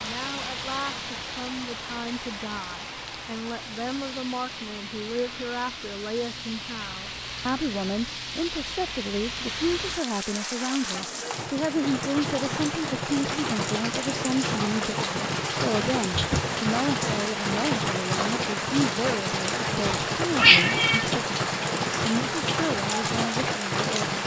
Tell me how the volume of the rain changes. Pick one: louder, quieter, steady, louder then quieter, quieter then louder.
louder.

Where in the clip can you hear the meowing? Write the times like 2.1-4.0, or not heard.
19.9-21.1.